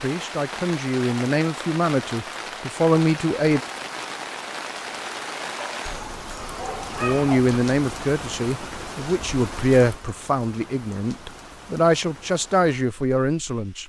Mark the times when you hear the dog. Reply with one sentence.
The dog can be heard from 5.5 to 7.5 s.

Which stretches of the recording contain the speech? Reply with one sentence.
The speech can be heard from 0.0 to 3.6 s and from 7.0 to 13.8 s.